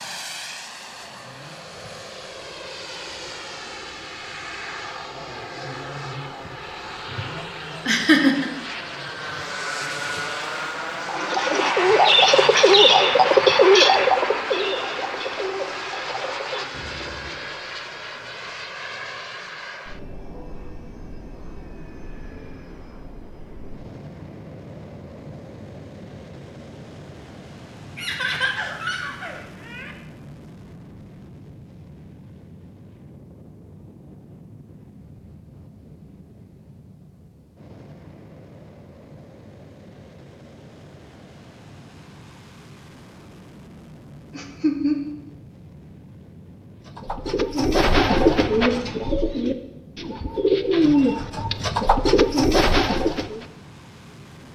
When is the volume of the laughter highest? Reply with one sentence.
The volume of the laughter peaks at 8 seconds.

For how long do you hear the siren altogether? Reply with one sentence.
You can't hear the siren here.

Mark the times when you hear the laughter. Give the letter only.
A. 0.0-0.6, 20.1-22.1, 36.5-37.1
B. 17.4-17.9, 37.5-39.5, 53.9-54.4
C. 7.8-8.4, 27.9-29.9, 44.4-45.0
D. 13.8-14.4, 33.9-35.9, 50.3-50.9
C.